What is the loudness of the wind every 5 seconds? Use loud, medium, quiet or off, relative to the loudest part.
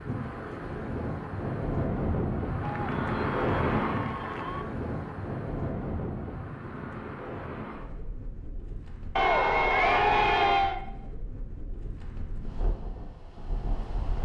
loud, medium, quiet.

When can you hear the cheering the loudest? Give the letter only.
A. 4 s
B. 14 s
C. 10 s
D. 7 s
C.